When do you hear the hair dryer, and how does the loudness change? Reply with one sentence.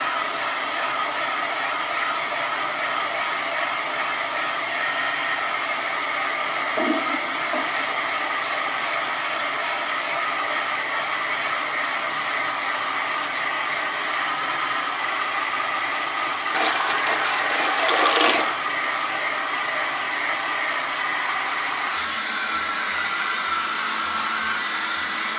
You can hear the hair dryer from 0.0 to 25.3 s, at a steady volume.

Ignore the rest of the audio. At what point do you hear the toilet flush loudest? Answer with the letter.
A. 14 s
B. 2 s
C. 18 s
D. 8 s
C.